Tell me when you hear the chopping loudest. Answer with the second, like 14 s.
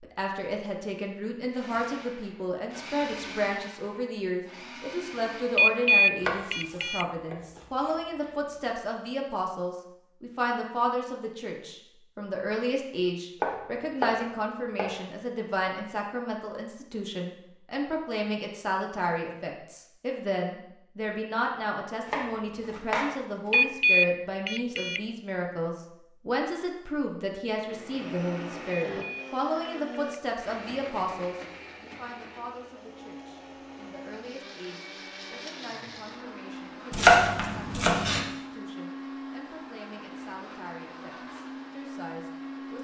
37 s.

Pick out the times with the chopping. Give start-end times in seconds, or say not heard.
6.2-7.9, 13.4-15.0, 22.1-23.6, 36.9-38.2.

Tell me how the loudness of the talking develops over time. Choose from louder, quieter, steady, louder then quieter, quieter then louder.
quieter.